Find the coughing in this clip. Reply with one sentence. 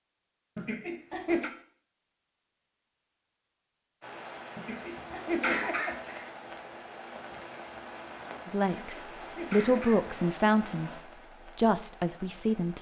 You can hear the coughing from 0.6 to 1.5 s, from 4.5 to 6.3 s and from 8.8 to 10.1 s.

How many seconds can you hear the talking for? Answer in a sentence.
The talking can be heard for 4 seconds in total.